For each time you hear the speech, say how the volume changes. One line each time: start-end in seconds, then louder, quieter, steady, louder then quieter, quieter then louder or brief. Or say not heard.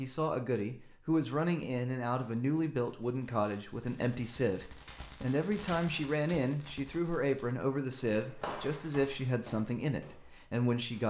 0.0-11.0 steady.